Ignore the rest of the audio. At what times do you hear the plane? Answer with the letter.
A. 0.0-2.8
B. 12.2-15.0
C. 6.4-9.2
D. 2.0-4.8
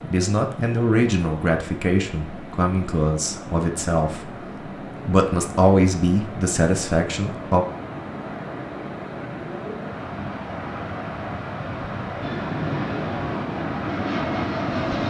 B.